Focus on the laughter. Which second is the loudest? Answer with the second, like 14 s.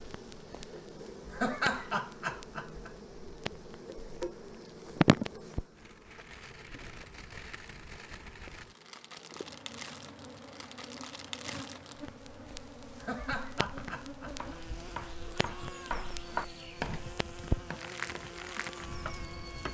2 s.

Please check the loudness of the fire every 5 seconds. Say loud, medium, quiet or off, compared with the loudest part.
medium, medium, medium, loud.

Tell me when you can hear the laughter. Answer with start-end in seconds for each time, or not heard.
1.3-2.9, 13.0-14.6.